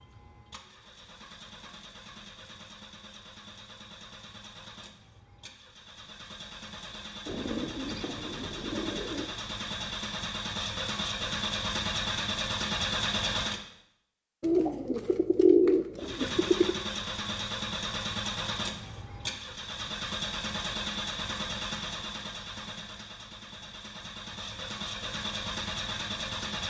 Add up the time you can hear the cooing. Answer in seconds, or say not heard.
4 s.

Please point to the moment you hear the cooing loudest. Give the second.
16 s.